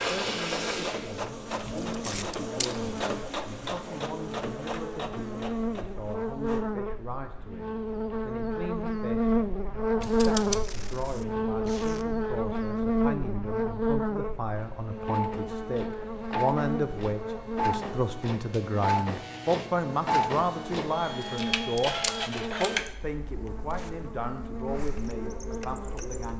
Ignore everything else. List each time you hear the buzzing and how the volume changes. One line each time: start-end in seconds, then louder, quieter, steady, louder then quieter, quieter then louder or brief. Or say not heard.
0.1-26.1 louder then quieter.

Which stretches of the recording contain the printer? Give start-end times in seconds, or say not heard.
0.0-6.7, 14.6-26.3.